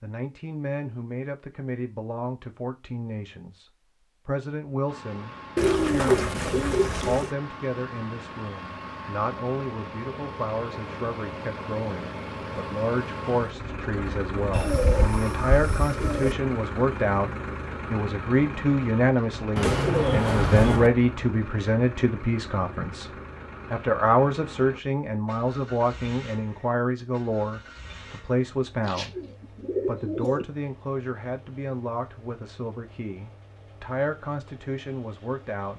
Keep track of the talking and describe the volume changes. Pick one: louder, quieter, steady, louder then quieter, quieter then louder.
louder then quieter.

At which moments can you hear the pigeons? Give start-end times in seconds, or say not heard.
5.5-7.3, 14.5-16.4, 19.6-20.9, 28.8-30.4.